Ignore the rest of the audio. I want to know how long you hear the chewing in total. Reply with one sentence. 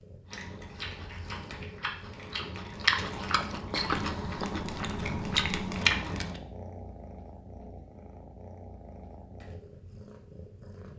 You can hear the chewing for 6 seconds altogether.